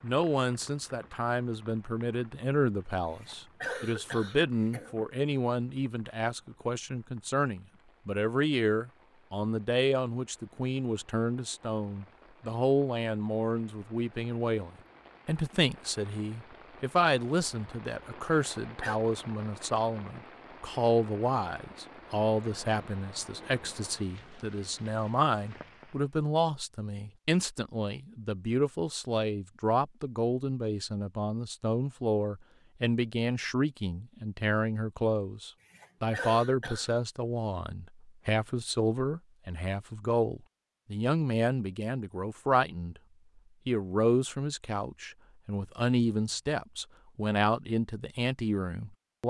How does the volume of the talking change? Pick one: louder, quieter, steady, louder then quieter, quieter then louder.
steady.